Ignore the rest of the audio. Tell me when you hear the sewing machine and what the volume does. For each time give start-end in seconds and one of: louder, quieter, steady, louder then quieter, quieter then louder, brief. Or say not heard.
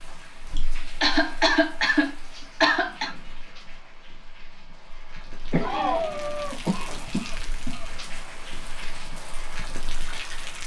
not heard.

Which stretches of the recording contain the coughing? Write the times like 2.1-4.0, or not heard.
0.6-3.1, 5.5-8.0.